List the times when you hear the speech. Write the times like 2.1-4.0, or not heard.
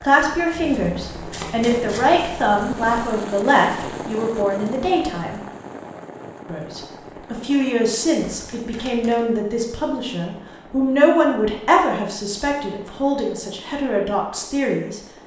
0.0-5.4, 6.5-15.0.